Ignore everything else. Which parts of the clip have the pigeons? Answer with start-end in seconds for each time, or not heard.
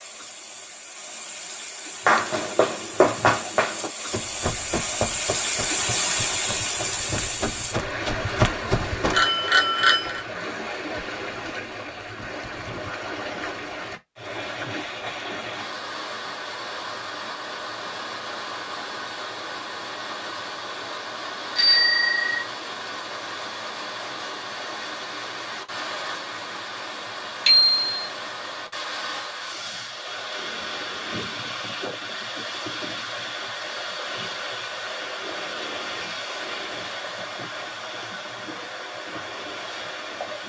not heard.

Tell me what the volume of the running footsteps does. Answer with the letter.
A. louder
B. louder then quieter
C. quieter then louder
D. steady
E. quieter
C.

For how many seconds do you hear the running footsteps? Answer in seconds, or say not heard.
7 s.